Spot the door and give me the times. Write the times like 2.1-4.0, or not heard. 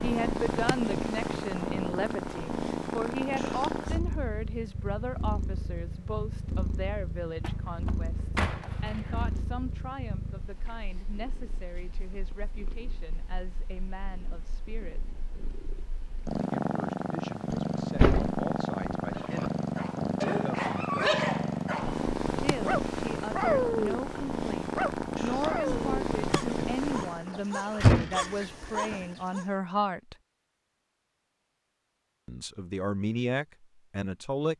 7.4-9.4, 17.5-19.5, 27.2-29.0.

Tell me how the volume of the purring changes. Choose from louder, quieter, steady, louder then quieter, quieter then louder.
quieter then louder.